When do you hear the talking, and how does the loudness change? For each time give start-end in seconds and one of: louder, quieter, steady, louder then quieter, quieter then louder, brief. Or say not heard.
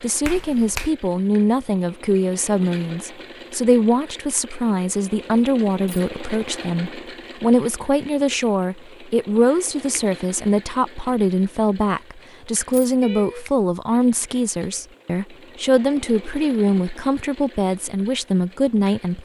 0.0-19.2 steady.